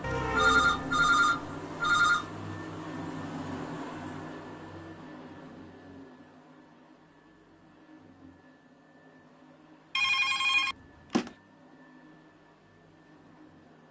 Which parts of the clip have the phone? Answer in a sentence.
The phone can be heard from 0.0 to 2.2 s and from 9.9 to 11.3 s.